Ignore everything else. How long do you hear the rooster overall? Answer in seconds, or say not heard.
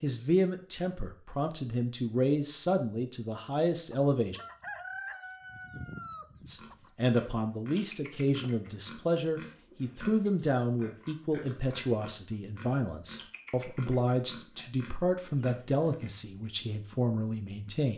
3 s.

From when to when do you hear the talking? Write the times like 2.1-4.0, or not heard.
0.0-4.4, 6.5-17.9.